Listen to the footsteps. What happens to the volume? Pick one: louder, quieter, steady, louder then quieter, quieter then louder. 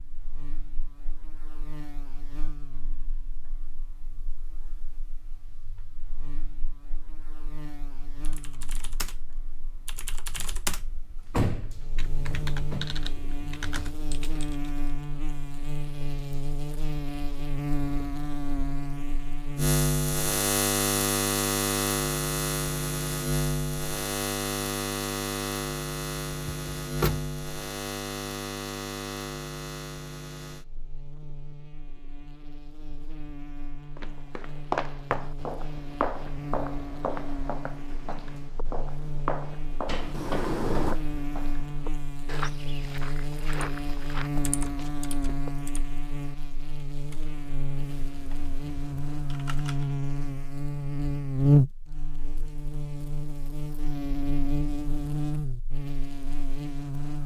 quieter.